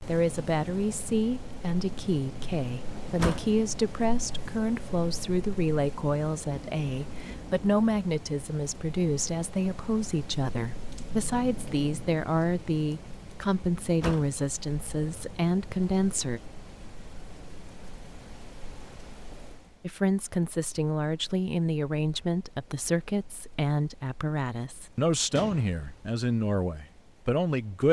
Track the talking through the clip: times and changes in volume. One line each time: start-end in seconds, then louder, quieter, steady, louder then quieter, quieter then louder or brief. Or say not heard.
0.1-16.4 steady
19.8-27.8 steady.